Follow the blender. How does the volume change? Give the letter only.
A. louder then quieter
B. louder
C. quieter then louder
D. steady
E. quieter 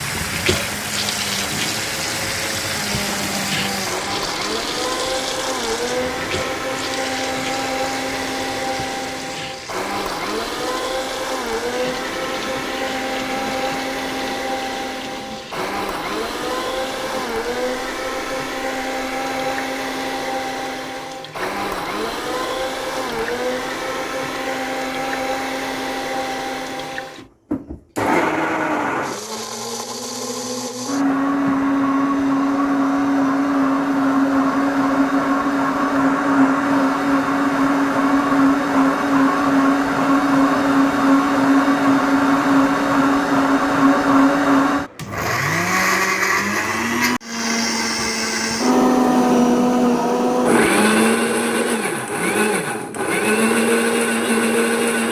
B.